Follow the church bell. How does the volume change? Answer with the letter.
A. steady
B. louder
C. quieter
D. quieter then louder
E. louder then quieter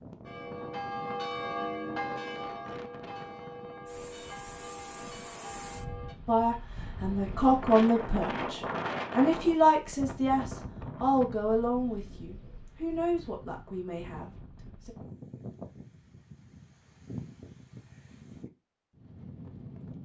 C.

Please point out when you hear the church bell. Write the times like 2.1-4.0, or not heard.
0.2-6.2.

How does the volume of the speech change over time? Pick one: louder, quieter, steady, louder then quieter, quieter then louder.
quieter.